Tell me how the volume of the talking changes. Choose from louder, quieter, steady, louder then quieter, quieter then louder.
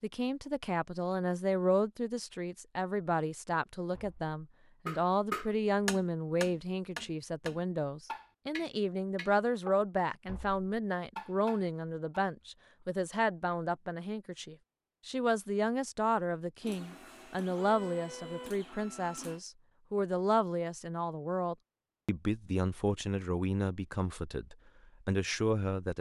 steady.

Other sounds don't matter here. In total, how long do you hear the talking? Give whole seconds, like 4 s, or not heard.
26 s.